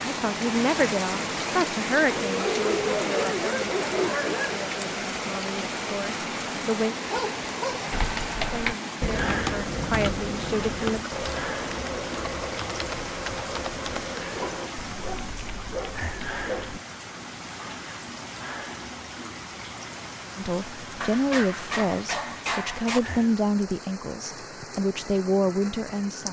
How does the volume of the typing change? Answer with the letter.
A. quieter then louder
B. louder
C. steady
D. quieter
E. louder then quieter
D.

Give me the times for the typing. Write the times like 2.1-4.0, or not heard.
7.9-16.8.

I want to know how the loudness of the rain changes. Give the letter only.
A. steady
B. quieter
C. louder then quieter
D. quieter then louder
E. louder
B.